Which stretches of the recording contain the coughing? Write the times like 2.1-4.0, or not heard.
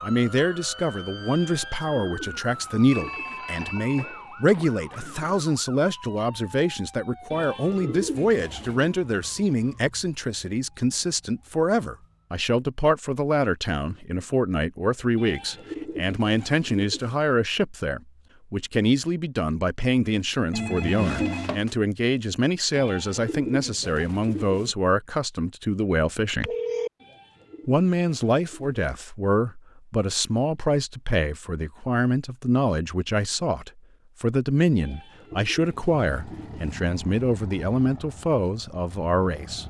not heard.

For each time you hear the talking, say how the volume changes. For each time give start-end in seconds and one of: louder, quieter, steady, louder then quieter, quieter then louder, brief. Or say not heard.
0.0-26.5 steady
27.6-39.6 steady.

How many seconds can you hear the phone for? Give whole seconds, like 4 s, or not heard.
4 s.